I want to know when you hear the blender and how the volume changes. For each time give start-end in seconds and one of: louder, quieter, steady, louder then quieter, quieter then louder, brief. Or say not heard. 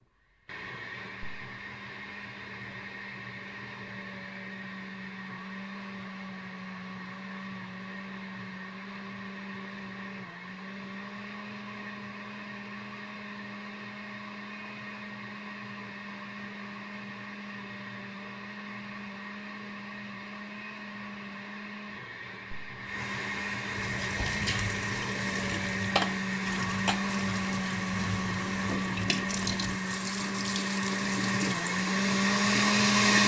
0.0-33.2 louder.